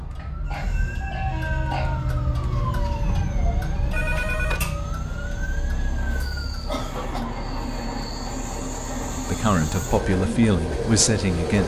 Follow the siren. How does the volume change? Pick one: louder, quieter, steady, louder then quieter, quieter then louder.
quieter.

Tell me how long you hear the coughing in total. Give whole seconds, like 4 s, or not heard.
3 s.